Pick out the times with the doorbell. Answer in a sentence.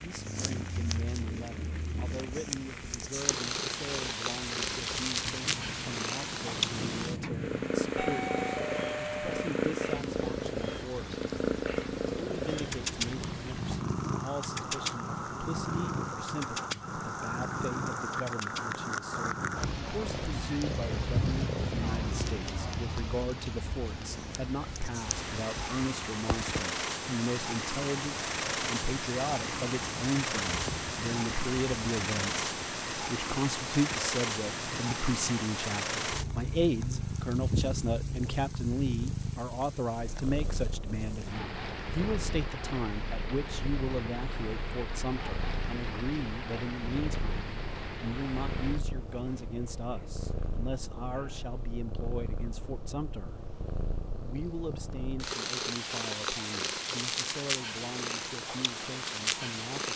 You can hear the doorbell from 8.0 to 9.4 s.